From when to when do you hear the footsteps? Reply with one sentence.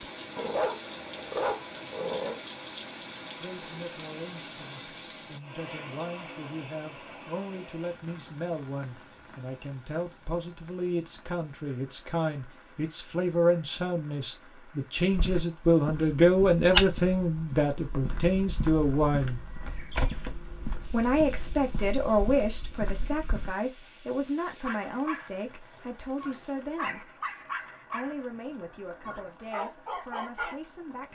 The footsteps can be heard from 15.1 to 23.6 s.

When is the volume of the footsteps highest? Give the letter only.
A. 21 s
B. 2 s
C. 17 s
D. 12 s
C.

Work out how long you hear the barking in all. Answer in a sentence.
The barking can be heard for 9 seconds in total.